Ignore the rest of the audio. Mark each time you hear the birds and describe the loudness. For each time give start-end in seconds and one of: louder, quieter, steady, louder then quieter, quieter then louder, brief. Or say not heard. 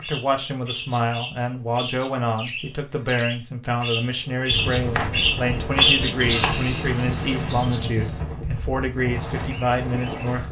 0.0-10.4 louder then quieter.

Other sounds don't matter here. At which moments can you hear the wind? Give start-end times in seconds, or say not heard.
4.5-10.4.